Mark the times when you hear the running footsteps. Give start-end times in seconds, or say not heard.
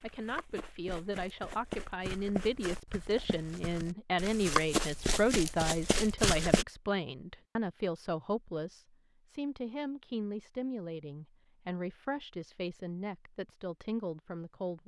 0.0-6.7.